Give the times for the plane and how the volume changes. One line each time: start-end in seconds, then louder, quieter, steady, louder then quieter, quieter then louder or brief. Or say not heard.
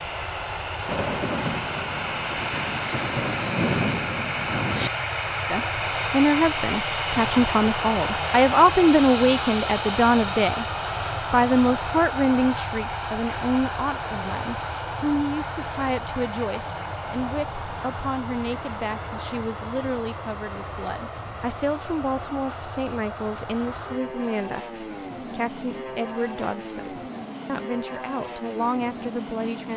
0.0-29.7 quieter.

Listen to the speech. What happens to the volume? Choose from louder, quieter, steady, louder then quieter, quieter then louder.
quieter.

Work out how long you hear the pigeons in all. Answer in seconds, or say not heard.
not heard.